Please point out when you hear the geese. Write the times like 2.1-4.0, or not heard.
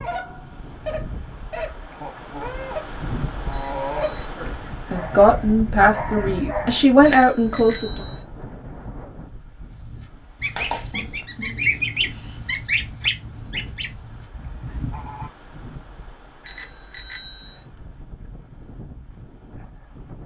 0.0-4.2, 9.7-15.3.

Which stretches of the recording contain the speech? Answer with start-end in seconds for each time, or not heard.
4.3-8.0.